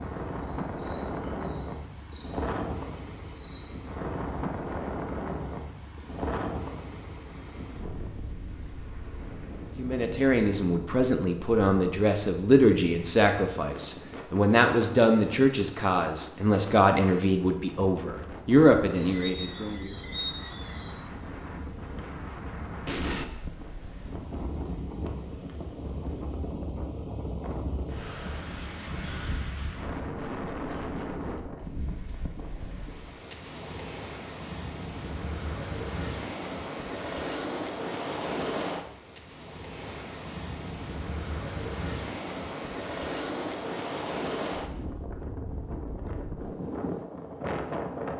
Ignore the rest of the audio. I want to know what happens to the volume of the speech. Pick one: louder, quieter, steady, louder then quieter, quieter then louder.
steady.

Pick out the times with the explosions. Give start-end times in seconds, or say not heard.
22.9-23.3.